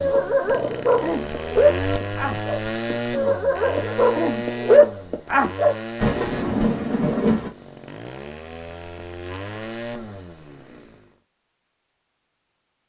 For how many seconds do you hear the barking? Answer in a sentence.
You can hear the barking for 6 seconds altogether.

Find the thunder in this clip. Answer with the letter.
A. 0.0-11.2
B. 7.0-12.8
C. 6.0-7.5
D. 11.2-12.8
C.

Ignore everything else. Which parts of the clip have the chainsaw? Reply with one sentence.
The chainsaw can be heard from 0.0 to 11.2 s.